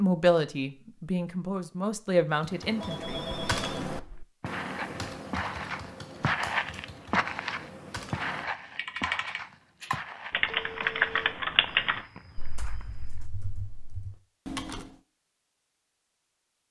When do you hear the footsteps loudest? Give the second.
6 s.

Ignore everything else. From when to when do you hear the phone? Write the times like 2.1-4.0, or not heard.
2.8-3.7, 10.4-11.3.